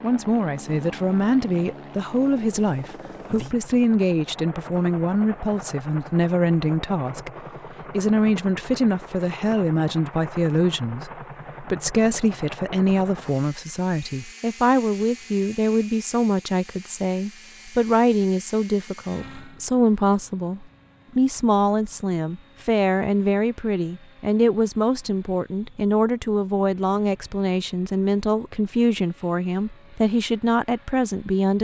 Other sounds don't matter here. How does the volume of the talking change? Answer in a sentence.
The volume of the talking stays about the same.